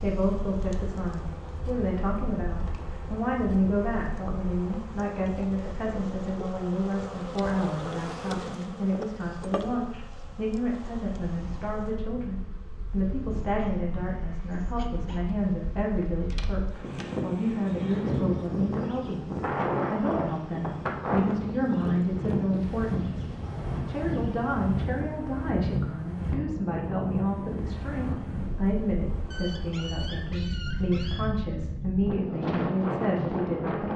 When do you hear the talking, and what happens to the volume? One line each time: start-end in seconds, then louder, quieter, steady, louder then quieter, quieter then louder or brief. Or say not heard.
0.0-23.2 steady
23.9-33.9 steady.